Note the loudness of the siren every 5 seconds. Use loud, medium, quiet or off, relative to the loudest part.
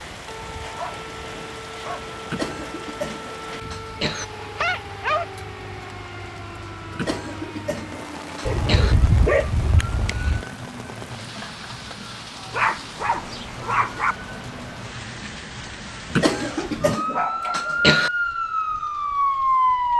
quiet, quiet, quiet, loud.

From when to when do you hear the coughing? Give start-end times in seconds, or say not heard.
2.2-4.2, 6.9-8.9, 16.1-18.1.